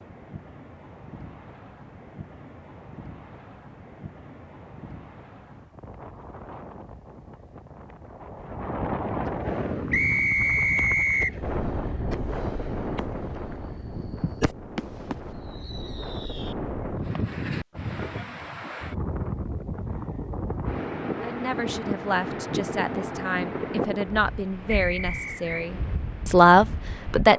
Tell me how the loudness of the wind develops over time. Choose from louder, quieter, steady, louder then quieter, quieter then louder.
louder.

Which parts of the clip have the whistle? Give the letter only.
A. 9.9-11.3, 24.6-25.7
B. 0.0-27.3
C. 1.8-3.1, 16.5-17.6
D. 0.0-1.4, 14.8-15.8
A.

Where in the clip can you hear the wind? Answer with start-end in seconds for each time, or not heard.
0.0-27.3.